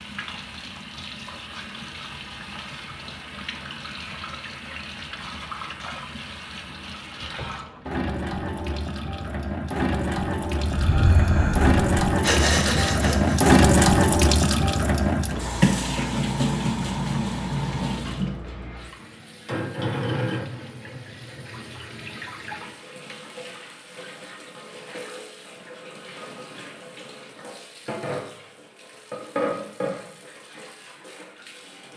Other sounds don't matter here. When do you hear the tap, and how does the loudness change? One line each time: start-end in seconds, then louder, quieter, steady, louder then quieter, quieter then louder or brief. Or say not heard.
0.0-31.9 louder then quieter.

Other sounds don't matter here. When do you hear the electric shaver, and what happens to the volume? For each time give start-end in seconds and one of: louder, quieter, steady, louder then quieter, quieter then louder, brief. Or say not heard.
not heard.